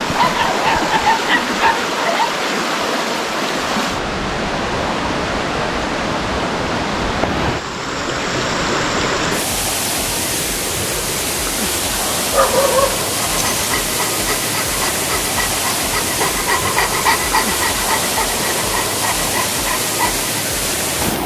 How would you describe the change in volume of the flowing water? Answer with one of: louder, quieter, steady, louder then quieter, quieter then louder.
steady.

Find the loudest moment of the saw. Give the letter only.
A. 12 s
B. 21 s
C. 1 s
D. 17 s
D.